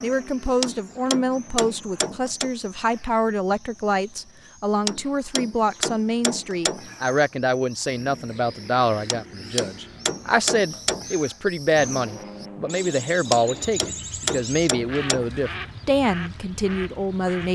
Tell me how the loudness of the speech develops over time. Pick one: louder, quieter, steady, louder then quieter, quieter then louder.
steady.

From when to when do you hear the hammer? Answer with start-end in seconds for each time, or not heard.
0.6-2.5, 4.8-7.2, 9.1-11.2, 13.3-15.6.